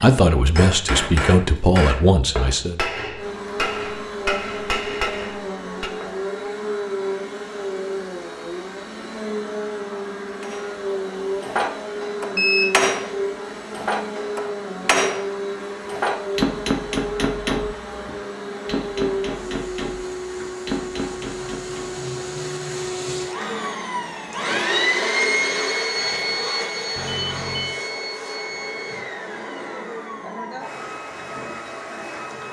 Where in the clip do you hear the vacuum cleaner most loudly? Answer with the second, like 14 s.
25 s.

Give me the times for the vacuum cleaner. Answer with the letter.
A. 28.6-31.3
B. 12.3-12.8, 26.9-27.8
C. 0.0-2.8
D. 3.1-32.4
D.